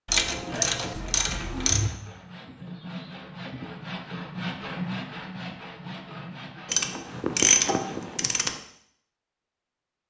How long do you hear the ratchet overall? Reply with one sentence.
The ratchet can be heard for 4 seconds in total.